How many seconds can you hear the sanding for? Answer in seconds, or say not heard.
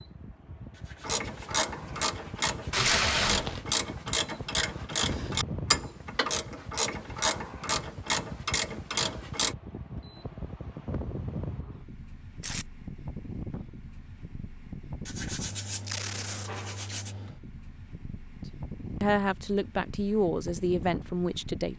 4 s.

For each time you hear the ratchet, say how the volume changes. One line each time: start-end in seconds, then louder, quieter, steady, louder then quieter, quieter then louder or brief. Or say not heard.
1.0-9.6 steady.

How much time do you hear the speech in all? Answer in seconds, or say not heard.
3 s.